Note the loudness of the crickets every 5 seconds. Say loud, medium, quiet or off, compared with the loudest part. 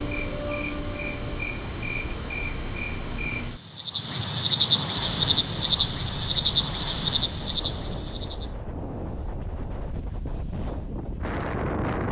loud, loud, off.